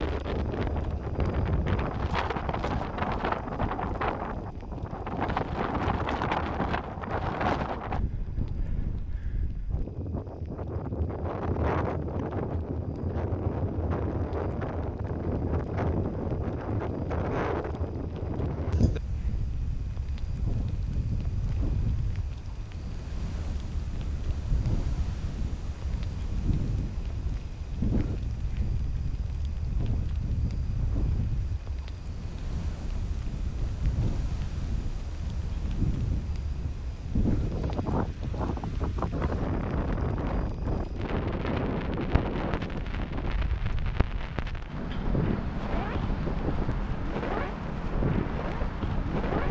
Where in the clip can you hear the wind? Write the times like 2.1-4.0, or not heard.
0.0-49.4.